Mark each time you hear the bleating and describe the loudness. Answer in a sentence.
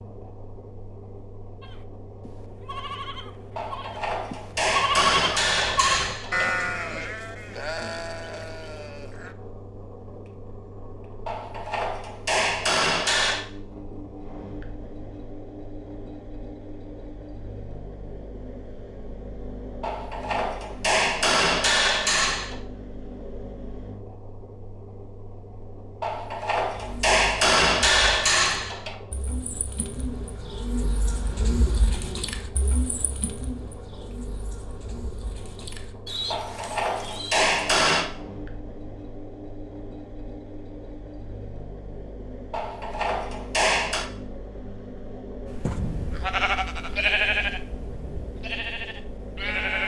You can hear the bleating from 1.6 to 9.3 s, getting louder then quieter; and from 45.5 to 49.8 s, getting quieter.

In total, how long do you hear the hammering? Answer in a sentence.
The hammering can be heard for 14 seconds in total.